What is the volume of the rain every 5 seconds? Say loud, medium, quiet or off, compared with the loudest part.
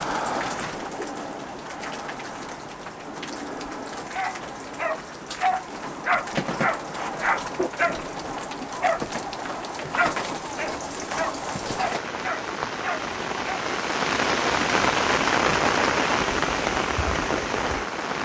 medium, medium, loud, loud.